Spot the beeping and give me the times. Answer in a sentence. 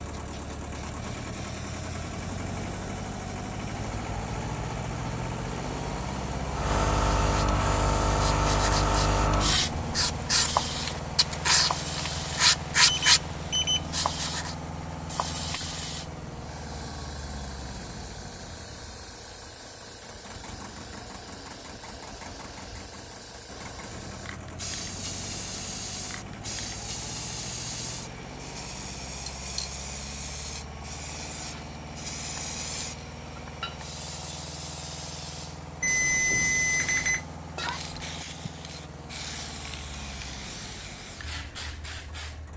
You can hear the beeping from 12.8 to 13.9 s and from 35.8 to 37.2 s.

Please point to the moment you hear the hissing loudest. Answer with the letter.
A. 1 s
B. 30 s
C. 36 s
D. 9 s
D.